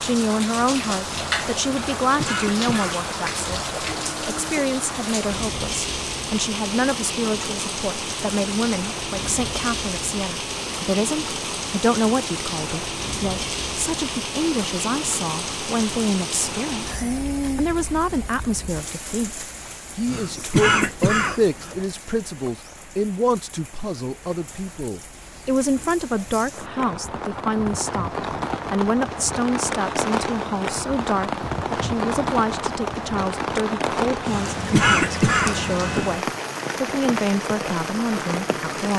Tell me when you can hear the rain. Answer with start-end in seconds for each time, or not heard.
0.0-38.9.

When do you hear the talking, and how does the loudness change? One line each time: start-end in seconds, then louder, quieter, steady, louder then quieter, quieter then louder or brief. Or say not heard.
0.0-38.9 steady.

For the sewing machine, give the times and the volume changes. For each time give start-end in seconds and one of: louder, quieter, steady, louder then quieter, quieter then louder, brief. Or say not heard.
not heard.